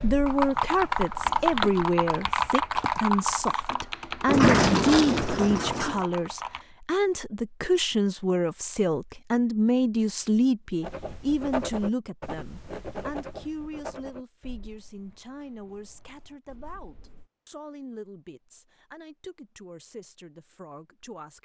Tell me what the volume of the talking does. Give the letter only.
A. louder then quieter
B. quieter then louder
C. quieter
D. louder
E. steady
C.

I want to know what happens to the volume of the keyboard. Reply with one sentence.
The volume of the keyboard goes down.